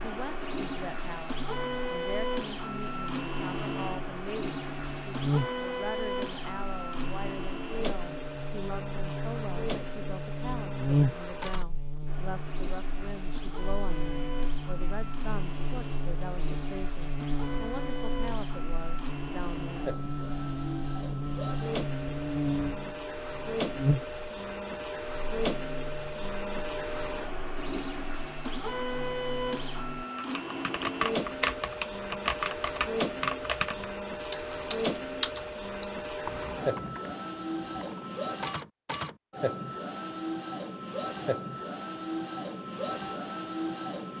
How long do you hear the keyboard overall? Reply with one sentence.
You can hear the keyboard for 8 seconds altogether.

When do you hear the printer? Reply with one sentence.
The printer can be heard from 0.0 to 44.1 s.